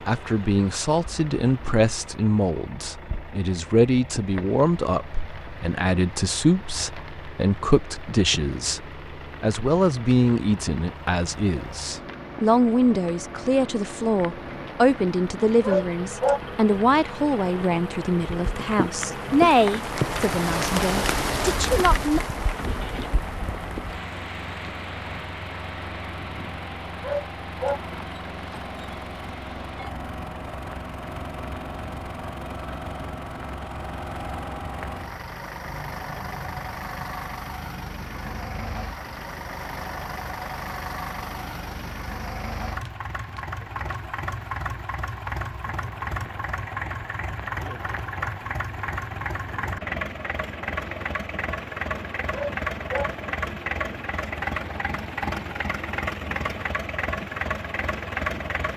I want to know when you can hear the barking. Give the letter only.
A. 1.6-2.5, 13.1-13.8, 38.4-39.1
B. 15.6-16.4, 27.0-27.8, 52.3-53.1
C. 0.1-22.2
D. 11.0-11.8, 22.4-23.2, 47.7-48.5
B.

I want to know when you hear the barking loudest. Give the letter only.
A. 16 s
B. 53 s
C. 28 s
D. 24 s
A.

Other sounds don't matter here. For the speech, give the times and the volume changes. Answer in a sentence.
You can hear the speech from 0.1 to 22.2 s, at a steady volume.